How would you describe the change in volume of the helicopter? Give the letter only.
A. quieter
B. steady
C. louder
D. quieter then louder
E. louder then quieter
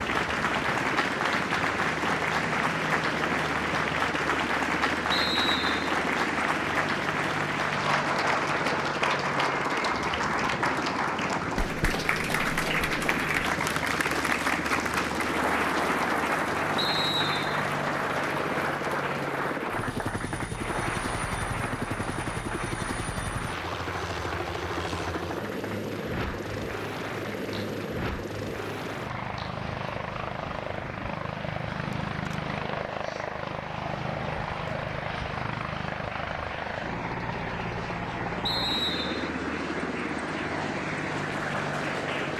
B.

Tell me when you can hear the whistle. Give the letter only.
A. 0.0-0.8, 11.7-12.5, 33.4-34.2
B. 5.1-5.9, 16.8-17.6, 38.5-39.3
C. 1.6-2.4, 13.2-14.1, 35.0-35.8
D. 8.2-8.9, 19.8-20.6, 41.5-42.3
B.